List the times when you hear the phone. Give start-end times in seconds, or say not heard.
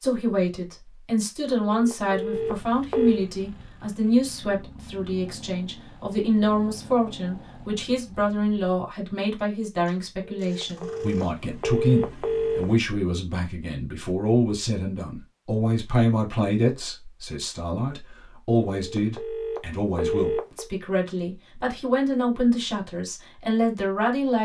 1.5-3.2, 10.2-12.7, 18.8-20.6.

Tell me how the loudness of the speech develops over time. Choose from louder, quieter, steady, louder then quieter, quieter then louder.
steady.